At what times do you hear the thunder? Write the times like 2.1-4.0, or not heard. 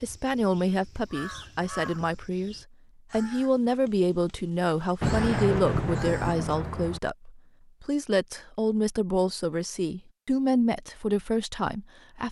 5.0-7.0.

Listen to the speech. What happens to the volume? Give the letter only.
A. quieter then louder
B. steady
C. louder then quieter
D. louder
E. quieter
B.